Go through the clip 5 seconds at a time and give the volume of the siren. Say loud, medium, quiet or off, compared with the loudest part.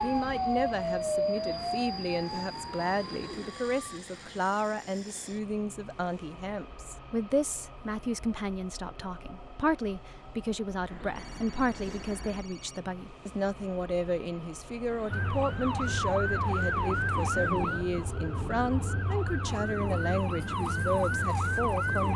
loud, off, off, loud, loud.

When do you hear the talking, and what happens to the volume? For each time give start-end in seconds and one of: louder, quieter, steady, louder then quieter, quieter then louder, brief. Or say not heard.
0.0-22.1 steady.